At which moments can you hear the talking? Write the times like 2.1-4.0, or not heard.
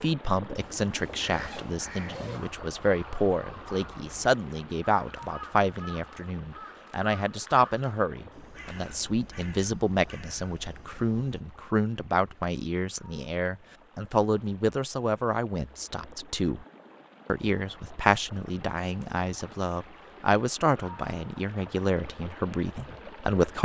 0.0-16.6, 17.2-23.6.